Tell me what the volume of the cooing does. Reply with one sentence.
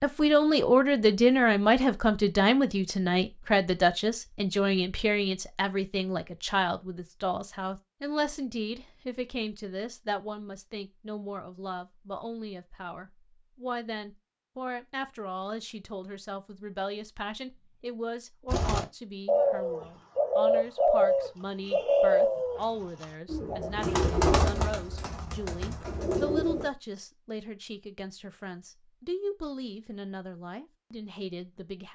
The volume of the cooing goes down.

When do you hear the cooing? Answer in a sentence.
The cooing can be heard from 18.4 to 26.7 s.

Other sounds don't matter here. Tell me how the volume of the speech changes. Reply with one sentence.
The loudness of the speech goes down.